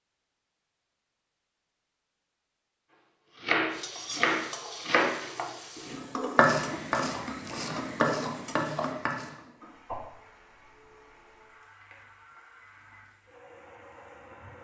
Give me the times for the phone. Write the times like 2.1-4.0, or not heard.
not heard.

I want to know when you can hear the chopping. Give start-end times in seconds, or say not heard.
3.4-9.3.